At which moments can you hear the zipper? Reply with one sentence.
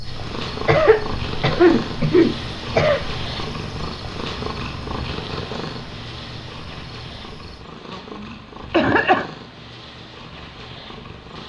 You can't hear the zipper here.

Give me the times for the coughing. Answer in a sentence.
You can hear the coughing from 0.7 to 3.0 s and from 7.9 to 9.2 s.